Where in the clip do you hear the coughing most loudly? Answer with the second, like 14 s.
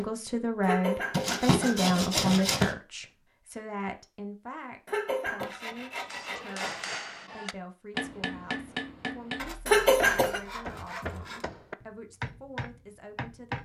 10 s.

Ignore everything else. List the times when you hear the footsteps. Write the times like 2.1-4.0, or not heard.
not heard.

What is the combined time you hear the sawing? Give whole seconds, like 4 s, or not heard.
5 s.